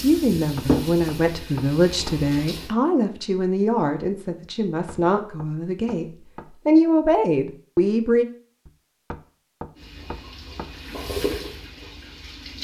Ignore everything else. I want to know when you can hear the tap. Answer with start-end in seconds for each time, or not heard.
0.0-2.8, 9.8-12.5.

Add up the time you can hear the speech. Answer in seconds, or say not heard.
8 s.